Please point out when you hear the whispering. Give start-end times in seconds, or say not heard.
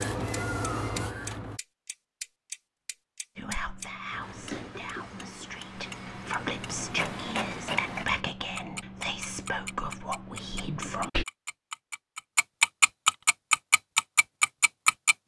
3.4-11.2.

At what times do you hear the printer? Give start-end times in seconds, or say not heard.
0.0-1.6, 4.1-8.1.